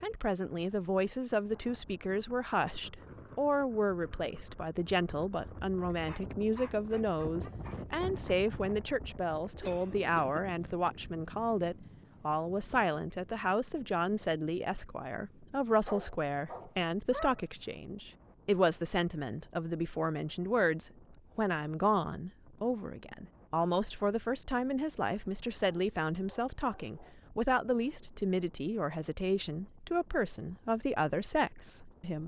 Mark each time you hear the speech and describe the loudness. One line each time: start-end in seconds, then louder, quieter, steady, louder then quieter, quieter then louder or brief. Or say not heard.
0.0-32.2 steady.